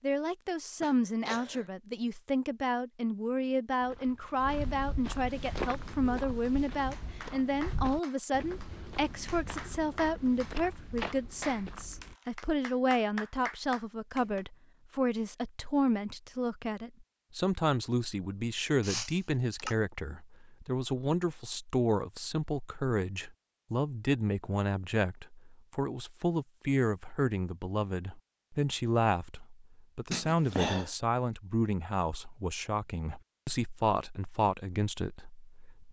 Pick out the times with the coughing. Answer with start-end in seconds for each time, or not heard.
0.8-1.6, 18.8-19.8, 30.1-30.9.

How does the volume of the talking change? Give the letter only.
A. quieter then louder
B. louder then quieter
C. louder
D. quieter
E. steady
E.